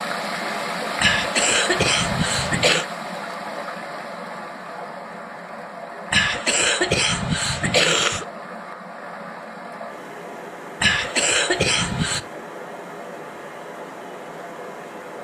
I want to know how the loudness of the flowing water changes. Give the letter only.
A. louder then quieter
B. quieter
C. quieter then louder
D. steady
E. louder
B.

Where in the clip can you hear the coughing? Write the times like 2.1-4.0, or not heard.
1.0-2.9, 6.1-8.2, 10.8-12.2.